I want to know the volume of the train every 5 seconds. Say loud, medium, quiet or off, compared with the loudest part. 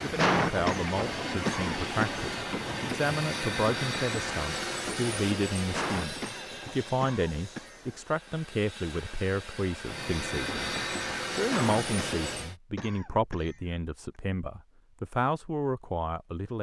loud, medium, loud, off.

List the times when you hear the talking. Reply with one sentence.
You can hear the talking from 0.0 to 10.8 s and from 11.3 to 16.5 s.